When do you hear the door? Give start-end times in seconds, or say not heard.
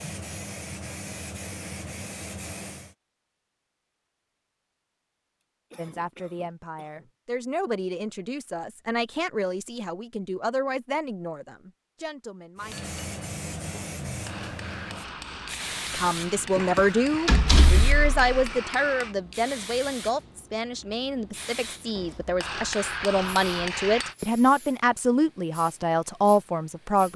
17.2-18.4.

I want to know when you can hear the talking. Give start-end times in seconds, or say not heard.
5.8-12.8, 15.9-27.1.